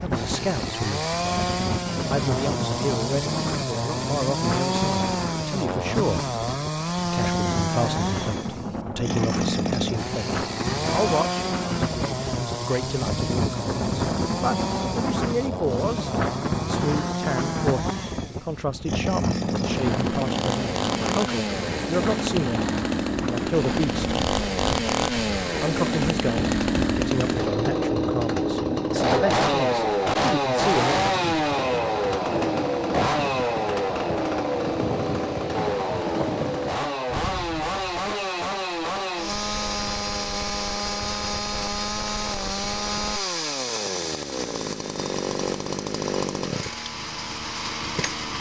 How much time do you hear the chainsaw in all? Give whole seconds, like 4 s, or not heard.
48 s.